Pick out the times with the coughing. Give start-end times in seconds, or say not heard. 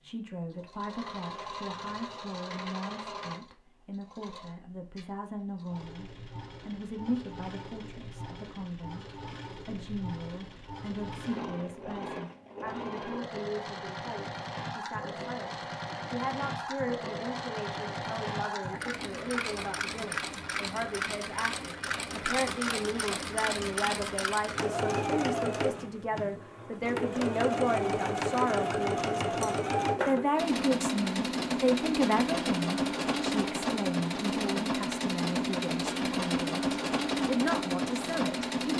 not heard.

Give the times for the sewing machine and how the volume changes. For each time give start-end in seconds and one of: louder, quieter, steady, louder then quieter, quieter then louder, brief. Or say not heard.
0.0-38.7 louder.